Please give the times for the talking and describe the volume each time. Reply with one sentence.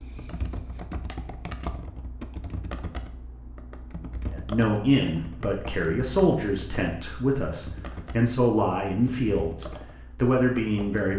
You can hear the talking from 4.3 to 11.1 s, at a steady volume.